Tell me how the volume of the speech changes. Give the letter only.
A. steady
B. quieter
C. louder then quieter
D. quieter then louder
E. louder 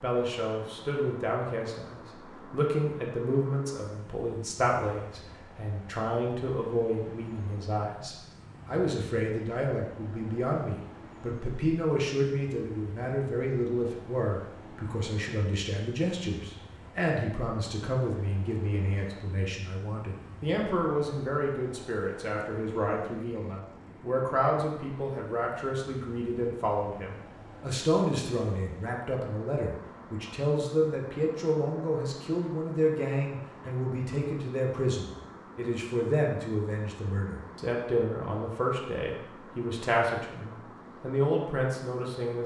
A.